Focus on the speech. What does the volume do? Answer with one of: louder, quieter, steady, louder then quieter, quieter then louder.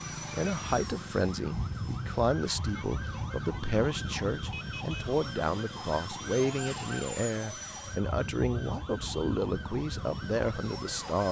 steady.